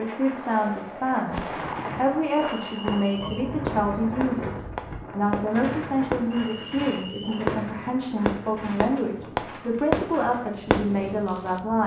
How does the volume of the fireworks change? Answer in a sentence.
The volume of the fireworks goes up.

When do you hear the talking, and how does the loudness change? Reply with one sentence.
The talking can be heard from 0.0 to 11.8 s, at a steady volume.